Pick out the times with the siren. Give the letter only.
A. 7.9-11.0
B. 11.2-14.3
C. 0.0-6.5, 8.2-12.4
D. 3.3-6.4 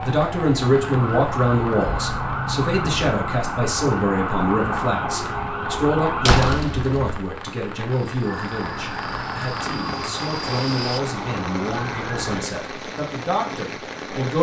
C.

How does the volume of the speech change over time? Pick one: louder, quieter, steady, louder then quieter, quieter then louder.
quieter.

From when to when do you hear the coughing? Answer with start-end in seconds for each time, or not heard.
not heard.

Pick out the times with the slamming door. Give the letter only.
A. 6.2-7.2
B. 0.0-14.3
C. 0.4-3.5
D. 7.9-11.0
A.